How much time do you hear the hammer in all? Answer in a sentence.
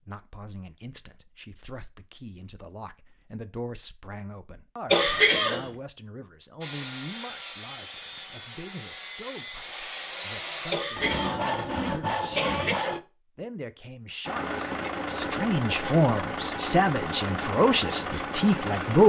The hammer can't be heard in this clip.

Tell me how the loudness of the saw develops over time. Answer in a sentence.
The loudness of the saw goes up.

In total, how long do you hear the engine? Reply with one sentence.
You can hear the engine for 5 seconds altogether.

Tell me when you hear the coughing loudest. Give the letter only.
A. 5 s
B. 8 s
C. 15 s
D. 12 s
A.